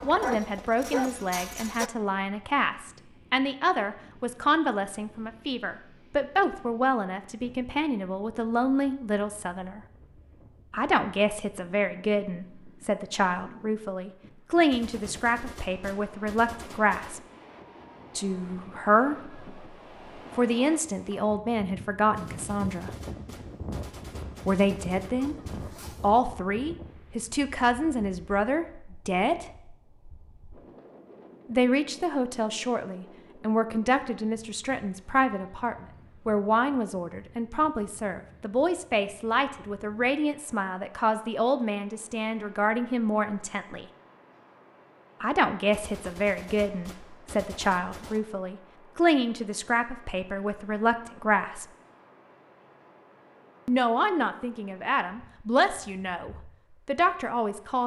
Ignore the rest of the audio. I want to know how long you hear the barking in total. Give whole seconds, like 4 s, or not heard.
2 s.